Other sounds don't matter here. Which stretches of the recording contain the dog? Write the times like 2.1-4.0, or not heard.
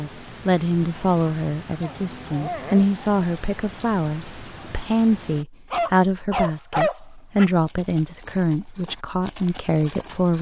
1.8-3.2, 5.7-7.5.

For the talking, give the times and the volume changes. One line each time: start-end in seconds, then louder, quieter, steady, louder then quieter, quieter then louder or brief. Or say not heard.
0.0-10.3 steady.